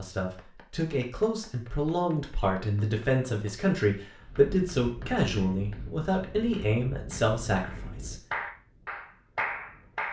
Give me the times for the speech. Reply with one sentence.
You can hear the speech from 0.0 to 8.2 s.